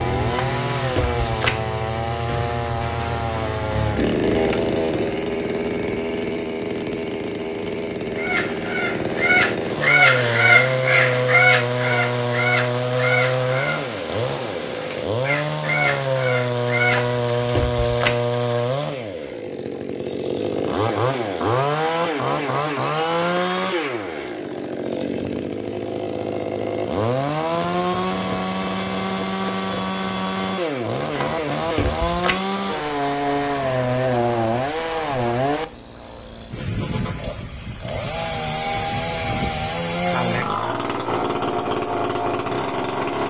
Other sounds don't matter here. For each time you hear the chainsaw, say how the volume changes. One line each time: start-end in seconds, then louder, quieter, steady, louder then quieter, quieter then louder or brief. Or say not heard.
0.0-43.2 steady.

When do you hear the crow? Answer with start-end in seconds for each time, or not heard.
8.2-17.1.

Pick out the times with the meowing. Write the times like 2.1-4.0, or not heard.
0.3-1.6, 16.9-18.1, 31.1-32.4.